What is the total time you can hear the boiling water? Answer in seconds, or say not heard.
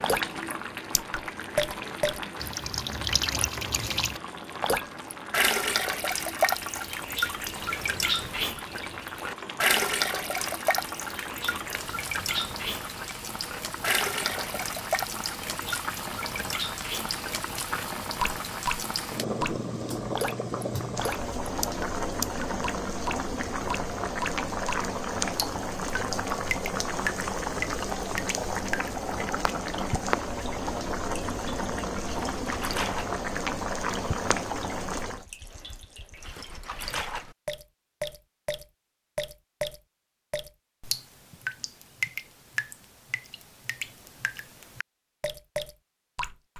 35 s.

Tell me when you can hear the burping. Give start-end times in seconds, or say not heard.
not heard.